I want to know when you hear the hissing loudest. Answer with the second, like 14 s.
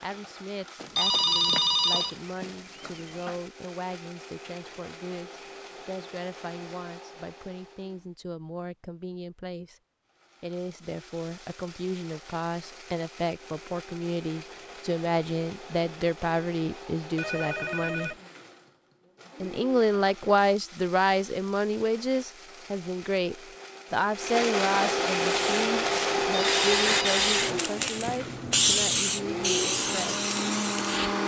29 s.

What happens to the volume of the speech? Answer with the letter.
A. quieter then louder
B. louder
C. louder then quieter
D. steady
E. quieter
C.